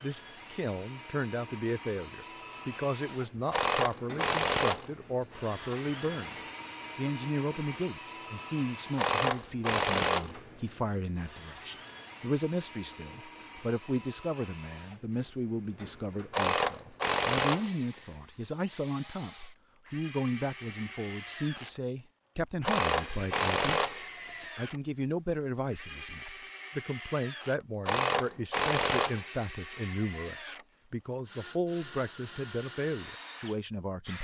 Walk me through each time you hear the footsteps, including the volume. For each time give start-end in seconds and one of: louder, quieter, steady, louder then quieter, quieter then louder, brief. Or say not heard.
not heard.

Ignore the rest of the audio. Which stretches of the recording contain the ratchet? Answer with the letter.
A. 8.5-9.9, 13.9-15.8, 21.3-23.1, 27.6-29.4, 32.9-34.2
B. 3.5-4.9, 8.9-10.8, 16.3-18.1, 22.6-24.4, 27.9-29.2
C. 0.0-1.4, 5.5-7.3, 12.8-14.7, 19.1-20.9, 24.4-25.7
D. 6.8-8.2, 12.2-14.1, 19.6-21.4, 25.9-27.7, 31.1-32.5
B.